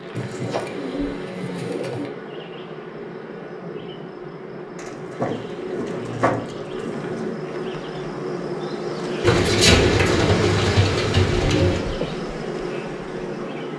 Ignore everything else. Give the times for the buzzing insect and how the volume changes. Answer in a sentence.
You can hear the buzzing insect from 0.0 to 13.7 s, getting louder.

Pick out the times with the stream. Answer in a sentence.
The stream can't be heard in this clip.